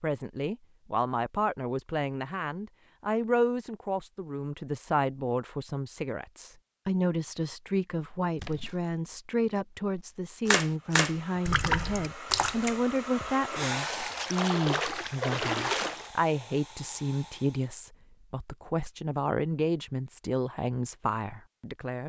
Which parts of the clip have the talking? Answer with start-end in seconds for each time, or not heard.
0.0-22.0.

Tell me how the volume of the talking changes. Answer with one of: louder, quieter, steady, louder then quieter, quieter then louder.
steady.